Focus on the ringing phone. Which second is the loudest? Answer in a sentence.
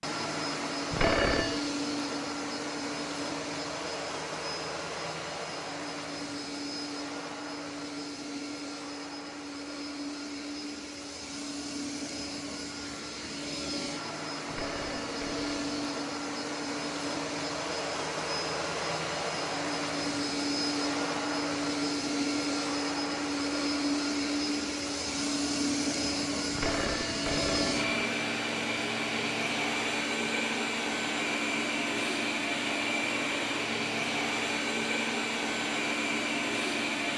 The volume of the ringing phone peaks at 1 second.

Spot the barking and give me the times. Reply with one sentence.
You can't hear the barking here.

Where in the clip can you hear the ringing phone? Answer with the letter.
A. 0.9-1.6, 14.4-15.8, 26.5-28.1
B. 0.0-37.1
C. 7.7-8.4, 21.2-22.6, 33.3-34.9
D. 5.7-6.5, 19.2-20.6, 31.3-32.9
A.